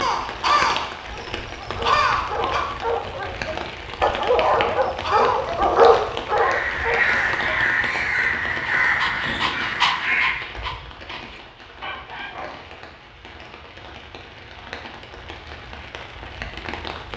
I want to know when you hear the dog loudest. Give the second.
6 s.